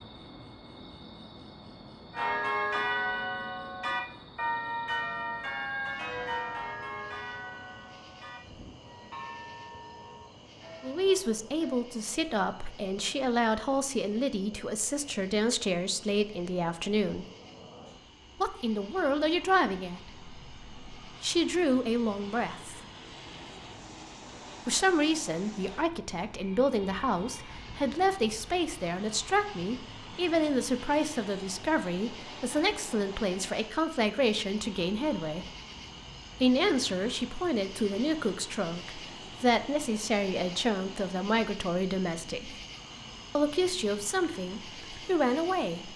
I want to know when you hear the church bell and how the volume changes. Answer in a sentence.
The church bell can be heard from 2.1 to 11.8 s, getting quieter.